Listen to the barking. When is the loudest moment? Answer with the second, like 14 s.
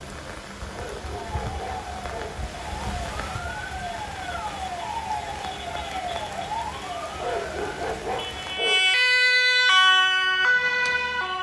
8 s.